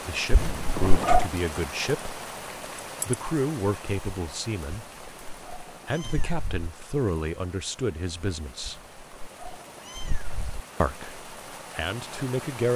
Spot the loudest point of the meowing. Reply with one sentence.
The loudest moment of the meowing is at 1 second.